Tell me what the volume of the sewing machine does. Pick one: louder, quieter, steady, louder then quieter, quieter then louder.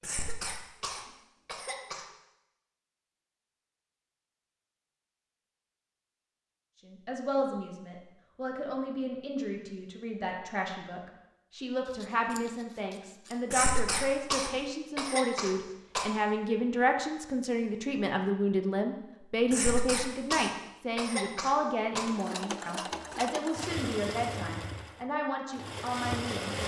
quieter then louder.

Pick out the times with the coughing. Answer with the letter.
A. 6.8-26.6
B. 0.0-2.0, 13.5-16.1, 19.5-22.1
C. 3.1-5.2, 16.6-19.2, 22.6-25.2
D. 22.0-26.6
B.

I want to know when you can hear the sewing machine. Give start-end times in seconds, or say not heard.
22.0-26.6.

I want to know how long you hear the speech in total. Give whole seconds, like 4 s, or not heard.
20 s.